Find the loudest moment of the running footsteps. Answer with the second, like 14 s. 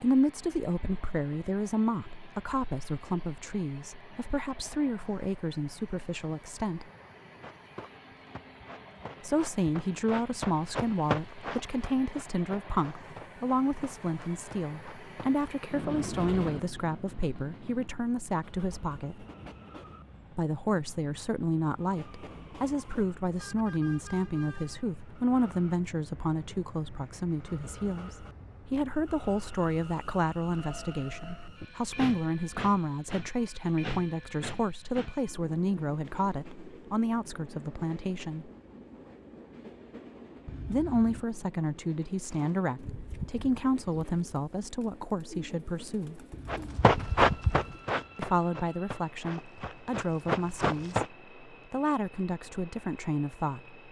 47 s.